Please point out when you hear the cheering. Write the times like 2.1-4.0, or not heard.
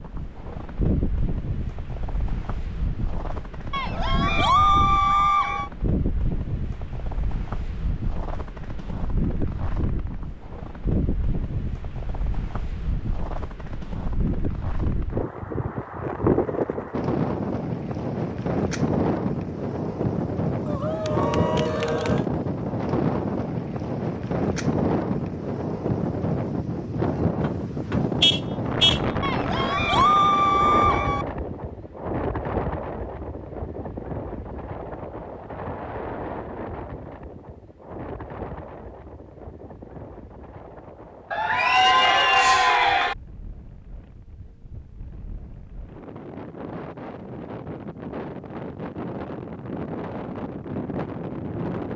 3.7-5.7, 20.6-22.2, 29.2-31.2, 41.3-43.1.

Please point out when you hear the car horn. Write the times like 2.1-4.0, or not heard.
27.4-29.0.